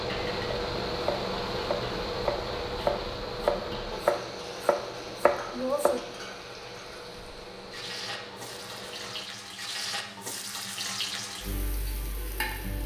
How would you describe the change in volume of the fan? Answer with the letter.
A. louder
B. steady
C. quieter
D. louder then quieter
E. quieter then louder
C.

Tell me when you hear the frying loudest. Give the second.
11 s.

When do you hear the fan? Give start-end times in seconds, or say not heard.
0.0-9.2.